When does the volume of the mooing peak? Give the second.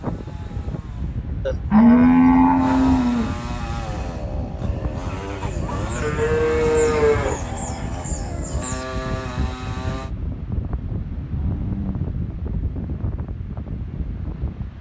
2 s.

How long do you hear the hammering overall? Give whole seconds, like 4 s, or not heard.
not heard.